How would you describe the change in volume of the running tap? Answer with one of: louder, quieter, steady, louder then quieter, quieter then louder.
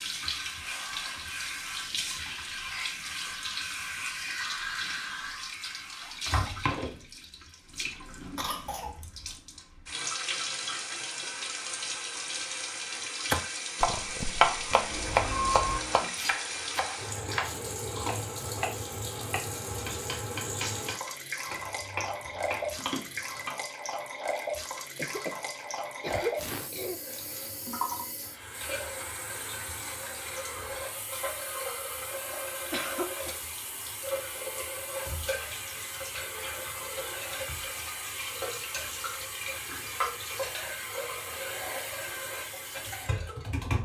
steady.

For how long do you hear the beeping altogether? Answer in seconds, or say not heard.
2 s.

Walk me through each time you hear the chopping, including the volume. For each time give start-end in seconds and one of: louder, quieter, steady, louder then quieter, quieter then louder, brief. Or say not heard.
13.3-23.6 quieter.